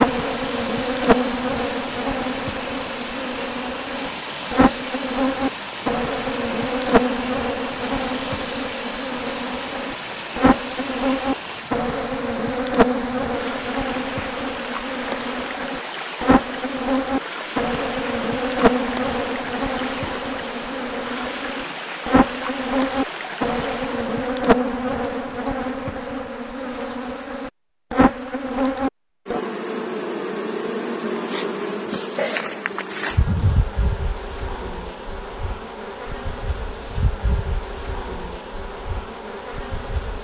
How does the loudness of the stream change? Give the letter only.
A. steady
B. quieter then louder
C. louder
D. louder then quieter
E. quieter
A.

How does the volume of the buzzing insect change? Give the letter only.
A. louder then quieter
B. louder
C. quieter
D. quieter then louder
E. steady
C.